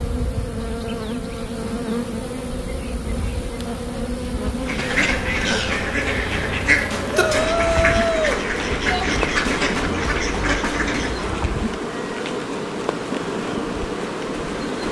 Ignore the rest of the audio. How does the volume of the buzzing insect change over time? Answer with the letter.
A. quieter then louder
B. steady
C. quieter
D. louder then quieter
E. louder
B.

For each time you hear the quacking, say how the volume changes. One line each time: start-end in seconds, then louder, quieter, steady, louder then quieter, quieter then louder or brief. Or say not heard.
4.5-11.4 steady.